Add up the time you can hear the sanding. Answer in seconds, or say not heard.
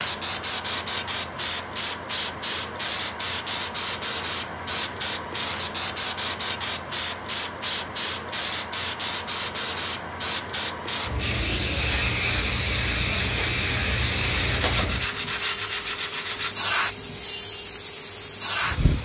2 s.